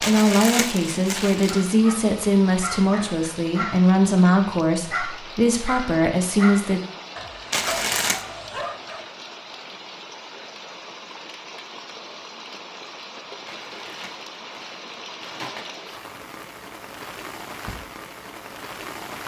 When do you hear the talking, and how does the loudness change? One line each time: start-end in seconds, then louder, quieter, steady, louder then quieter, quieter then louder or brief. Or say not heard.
0.0-6.8 steady.